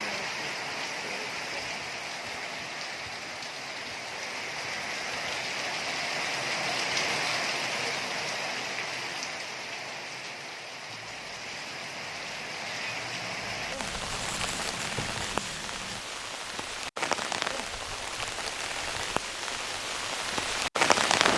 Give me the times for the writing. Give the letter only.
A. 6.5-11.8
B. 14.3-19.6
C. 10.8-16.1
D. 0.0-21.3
C.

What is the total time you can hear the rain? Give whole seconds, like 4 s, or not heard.
21 s.